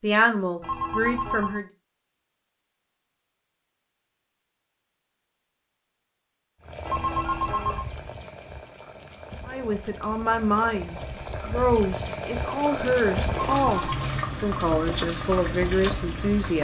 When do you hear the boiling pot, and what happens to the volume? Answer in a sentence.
You can hear the boiling pot from 6.6 to 16.6 s, getting louder.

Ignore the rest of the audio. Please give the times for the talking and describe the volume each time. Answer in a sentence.
The talking can be heard briefly from 0.0 to 1.6 s; and from 9.4 to 16.6 s, at a steady volume.